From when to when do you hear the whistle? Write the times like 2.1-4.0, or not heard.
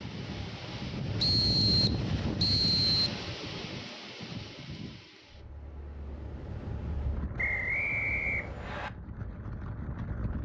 1.2-3.2, 7.3-8.9.